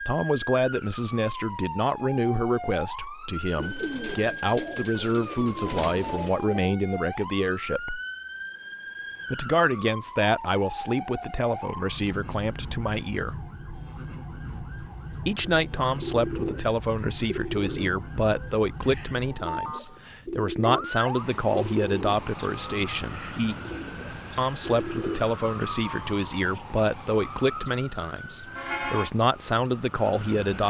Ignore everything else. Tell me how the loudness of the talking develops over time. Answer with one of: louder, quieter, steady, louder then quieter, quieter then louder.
steady.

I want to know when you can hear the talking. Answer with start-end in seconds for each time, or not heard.
0.0-8.0, 9.3-13.4, 15.2-23.6, 24.4-30.6.